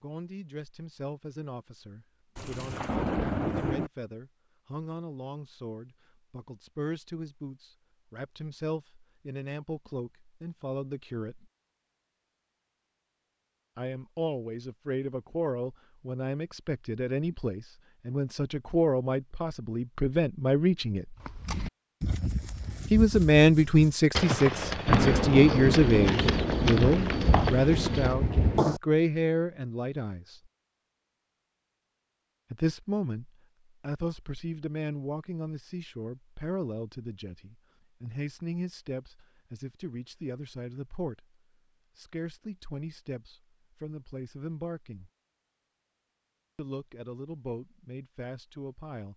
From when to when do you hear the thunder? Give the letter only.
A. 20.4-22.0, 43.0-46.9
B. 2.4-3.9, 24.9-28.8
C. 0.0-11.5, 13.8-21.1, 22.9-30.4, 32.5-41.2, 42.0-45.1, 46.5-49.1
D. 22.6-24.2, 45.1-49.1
B.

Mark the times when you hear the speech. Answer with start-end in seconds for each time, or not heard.
0.0-11.5, 13.8-21.1, 22.9-30.4, 32.5-41.2, 42.0-45.1, 46.5-49.1.